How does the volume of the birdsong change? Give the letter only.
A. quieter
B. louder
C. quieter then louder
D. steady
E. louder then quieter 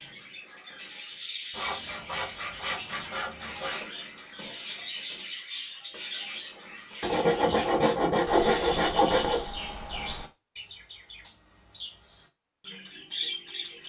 D.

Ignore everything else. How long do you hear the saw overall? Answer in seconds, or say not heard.
5 s.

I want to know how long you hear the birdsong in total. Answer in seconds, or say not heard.
14 s.